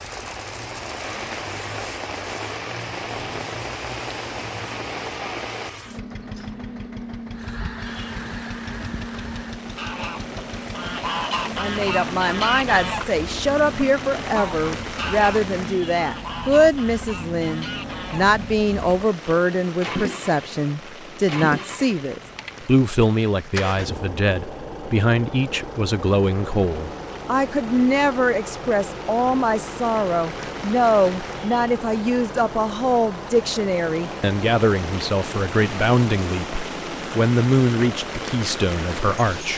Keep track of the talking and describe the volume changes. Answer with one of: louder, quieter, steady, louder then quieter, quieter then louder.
steady.